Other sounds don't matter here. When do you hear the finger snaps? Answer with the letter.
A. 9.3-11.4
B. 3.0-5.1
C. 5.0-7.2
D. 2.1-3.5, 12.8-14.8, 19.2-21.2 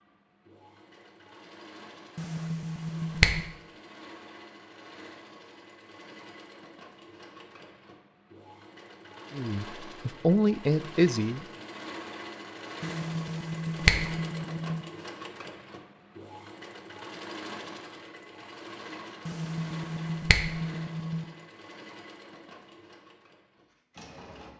D.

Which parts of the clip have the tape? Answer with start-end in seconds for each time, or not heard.
not heard.